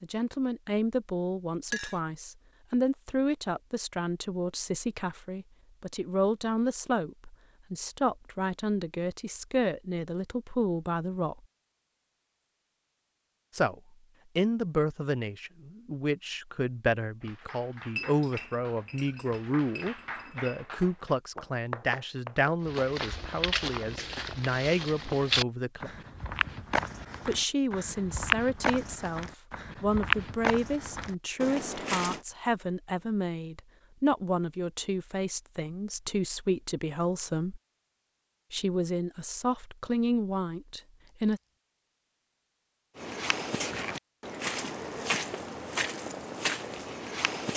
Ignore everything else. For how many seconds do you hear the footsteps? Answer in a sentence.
The footsteps can be heard for 14 seconds in total.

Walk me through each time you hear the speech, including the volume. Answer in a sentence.
You can hear the speech from 0.0 to 11.4 s, at a steady volume; from 13.6 to 25.9 s, at a steady volume; from 27.2 to 37.6 s, at a steady volume; and briefly from 38.5 to 41.4 s.